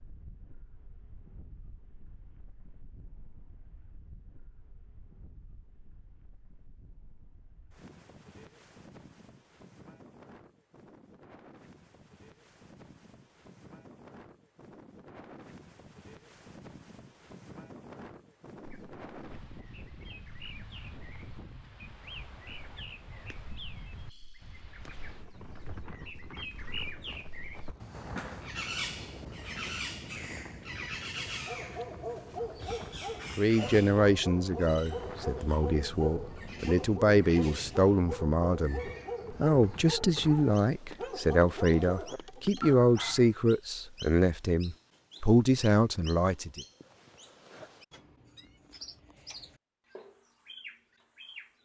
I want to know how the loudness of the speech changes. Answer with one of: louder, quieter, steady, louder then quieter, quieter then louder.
steady.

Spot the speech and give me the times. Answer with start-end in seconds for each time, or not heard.
33.4-46.6.